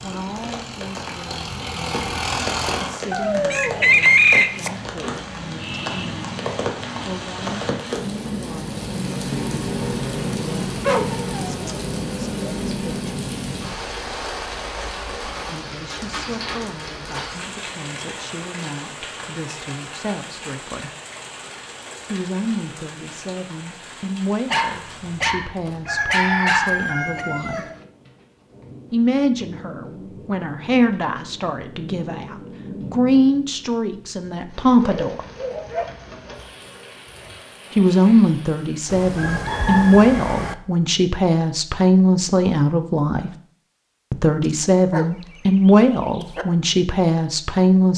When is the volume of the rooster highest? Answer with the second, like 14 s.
4 s.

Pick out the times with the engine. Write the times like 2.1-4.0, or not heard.
0.0-3.0.